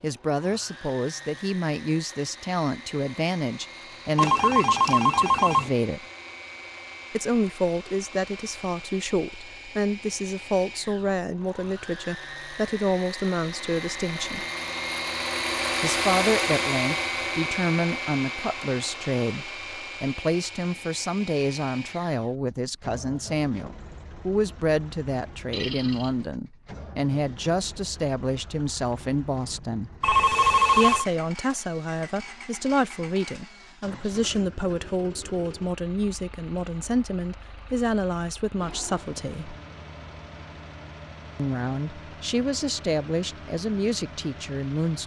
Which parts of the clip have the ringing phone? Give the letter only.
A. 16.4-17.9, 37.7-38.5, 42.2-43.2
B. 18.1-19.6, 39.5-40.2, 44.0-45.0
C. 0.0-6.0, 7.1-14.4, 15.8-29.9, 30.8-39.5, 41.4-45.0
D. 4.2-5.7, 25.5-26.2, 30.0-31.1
D.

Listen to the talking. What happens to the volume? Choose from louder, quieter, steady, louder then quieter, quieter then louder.
steady.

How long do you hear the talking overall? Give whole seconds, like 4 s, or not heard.
40 s.